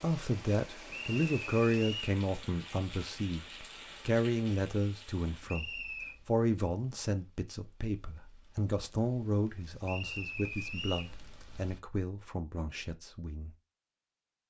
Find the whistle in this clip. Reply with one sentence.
The whistle can be heard from 0.8 to 2.1 s, from 5.5 to 6.2 s and from 9.8 to 11.2 s.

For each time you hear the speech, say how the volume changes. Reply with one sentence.
You can hear the speech from 0.0 to 13.6 s, getting quieter.